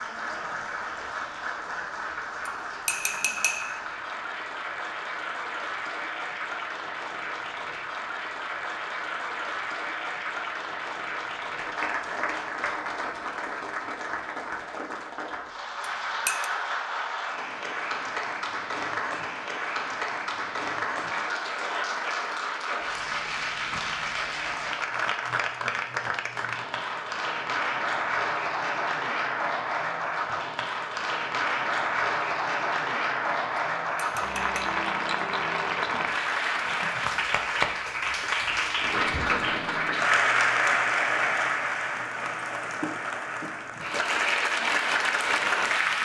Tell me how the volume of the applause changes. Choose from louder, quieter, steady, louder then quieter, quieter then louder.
louder.